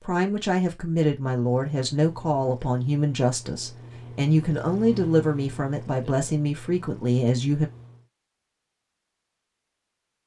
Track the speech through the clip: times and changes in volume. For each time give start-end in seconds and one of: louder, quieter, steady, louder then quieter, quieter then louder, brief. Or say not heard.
0.0-7.7 steady.